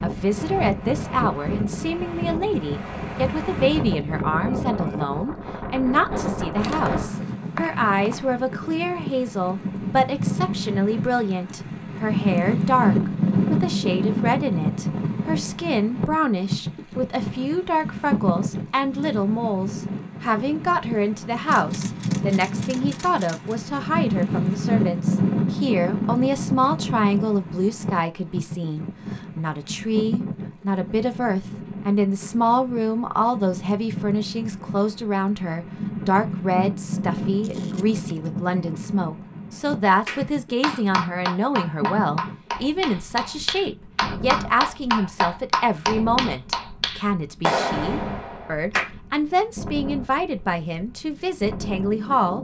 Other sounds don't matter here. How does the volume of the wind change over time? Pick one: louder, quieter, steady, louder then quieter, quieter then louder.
quieter.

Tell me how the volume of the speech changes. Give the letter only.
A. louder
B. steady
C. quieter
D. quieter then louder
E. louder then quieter
B.